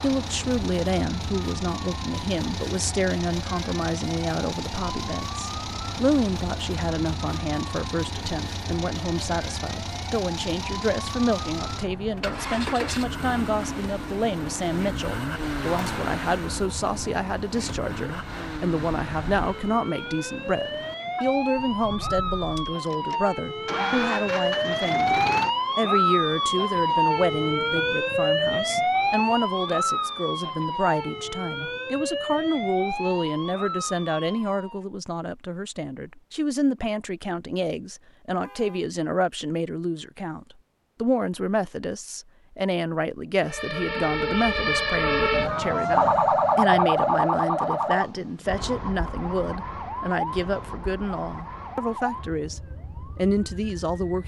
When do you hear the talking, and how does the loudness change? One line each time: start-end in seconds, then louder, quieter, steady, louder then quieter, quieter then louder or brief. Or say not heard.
0.0-54.2 steady.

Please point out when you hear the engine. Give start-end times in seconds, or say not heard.
0.0-25.6.